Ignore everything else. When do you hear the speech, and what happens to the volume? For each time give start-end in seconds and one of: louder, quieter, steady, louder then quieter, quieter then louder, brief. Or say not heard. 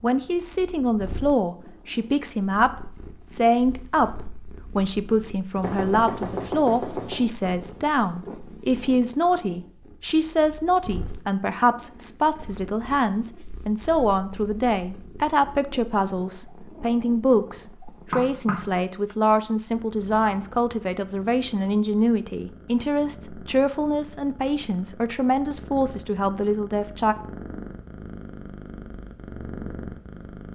0.0-27.1 steady.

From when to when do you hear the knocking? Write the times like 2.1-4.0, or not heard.
5.6-7.3, 17.9-18.6.